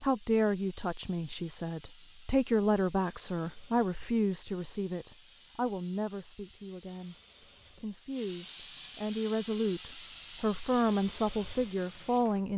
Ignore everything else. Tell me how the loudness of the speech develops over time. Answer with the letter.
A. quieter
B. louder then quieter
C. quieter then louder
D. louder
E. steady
C.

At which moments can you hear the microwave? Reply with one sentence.
The microwave can't be heard in this clip.